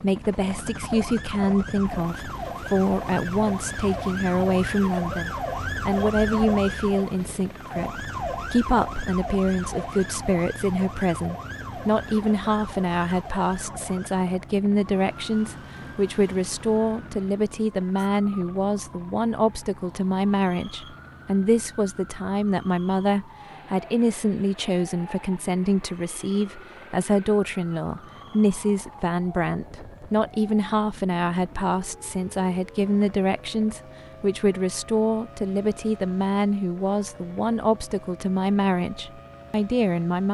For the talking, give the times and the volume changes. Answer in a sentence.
The talking can be heard from 0.0 to 40.2 s, at a steady volume.